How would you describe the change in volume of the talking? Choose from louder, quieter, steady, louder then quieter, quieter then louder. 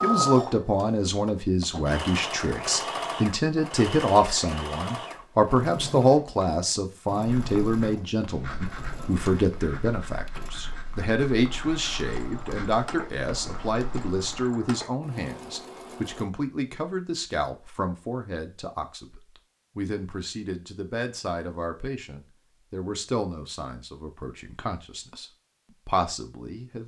quieter.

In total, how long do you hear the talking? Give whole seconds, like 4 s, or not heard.
27 s.